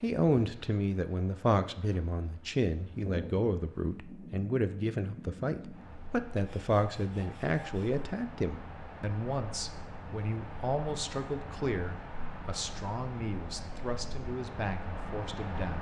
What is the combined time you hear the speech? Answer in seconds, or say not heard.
16 s.